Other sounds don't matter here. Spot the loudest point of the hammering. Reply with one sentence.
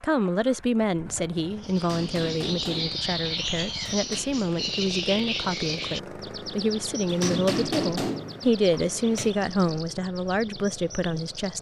The loudest moment of the hammering is at 8 seconds.